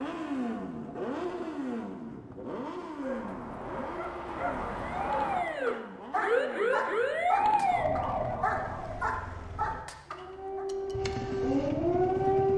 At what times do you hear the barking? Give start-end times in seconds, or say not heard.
2.9-10.7.